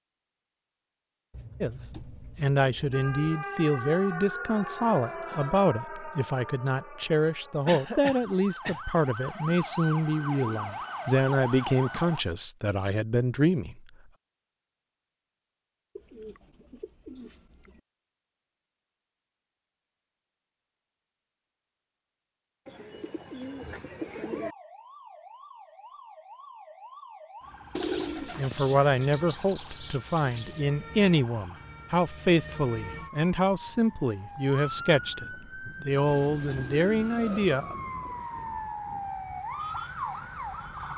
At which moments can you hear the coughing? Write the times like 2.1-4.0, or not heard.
7.7-8.8.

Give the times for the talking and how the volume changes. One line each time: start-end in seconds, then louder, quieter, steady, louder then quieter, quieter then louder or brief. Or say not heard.
1.6-13.8 steady
28.4-37.8 steady.